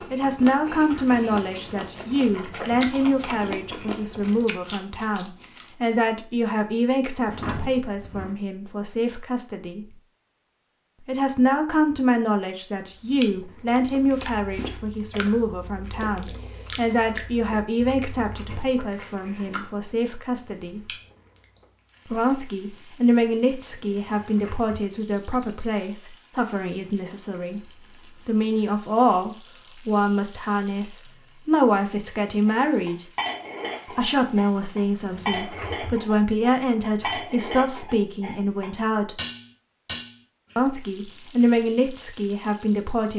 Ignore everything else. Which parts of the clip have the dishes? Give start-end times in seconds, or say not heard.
32.5-40.5.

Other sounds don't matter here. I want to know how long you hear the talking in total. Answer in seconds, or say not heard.
38 s.